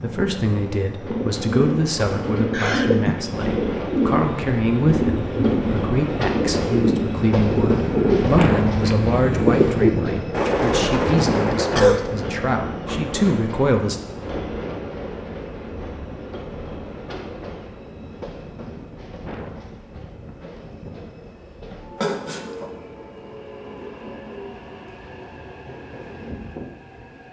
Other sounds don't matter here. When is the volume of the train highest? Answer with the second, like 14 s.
8 s.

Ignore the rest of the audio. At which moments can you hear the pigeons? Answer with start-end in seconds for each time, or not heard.
1.1-11.9.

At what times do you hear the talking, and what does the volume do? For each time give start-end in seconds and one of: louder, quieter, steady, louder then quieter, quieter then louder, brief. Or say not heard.
0.0-14.0 steady.